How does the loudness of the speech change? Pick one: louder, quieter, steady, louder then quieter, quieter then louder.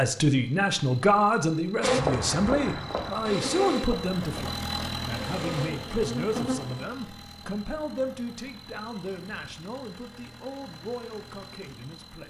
quieter.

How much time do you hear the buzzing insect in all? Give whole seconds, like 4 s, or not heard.
5 s.